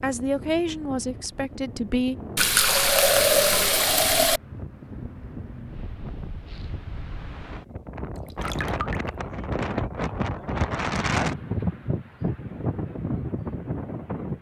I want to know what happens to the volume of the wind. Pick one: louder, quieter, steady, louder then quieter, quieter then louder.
louder.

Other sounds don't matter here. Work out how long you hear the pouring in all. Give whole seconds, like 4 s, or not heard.
3 s.